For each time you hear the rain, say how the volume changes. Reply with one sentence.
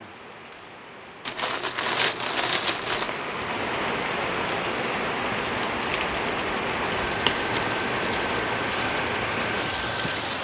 You can hear the rain from 0.0 to 10.3 s, getting louder.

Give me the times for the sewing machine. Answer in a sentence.
The sewing machine can be heard from 6.9 to 10.3 s.